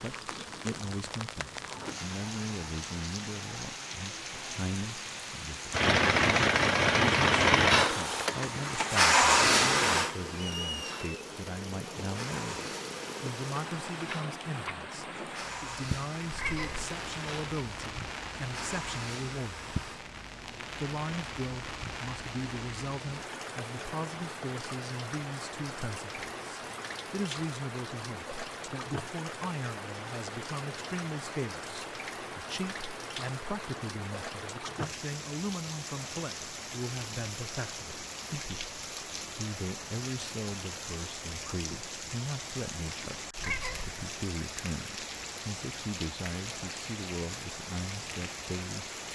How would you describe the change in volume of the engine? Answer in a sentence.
The loudness of the engine goes down.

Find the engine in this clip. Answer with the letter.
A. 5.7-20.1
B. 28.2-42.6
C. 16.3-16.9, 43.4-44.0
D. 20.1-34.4
A.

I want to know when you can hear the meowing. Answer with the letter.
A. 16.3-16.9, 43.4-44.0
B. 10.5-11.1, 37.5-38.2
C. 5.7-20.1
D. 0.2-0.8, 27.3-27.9
A.